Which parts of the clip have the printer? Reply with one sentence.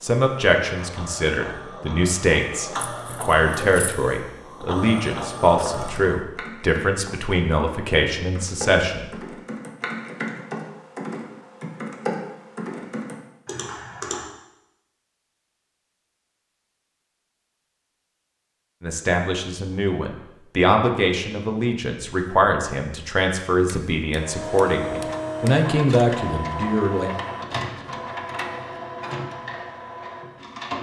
You can hear the printer from 0.0 to 6.2 s and from 24.1 to 30.7 s.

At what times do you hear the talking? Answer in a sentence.
You can hear the talking from 0.0 to 9.1 s and from 18.8 to 27.1 s.